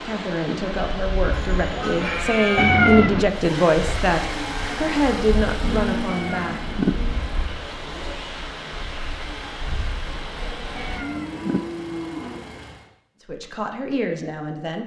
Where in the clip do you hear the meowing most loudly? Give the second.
3 s.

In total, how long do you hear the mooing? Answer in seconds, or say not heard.
5 s.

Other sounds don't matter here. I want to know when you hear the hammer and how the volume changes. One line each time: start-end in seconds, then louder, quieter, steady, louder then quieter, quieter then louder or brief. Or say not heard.
not heard.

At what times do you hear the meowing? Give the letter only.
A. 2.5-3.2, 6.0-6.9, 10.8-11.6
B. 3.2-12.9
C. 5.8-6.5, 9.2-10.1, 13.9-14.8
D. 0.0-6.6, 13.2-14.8
A.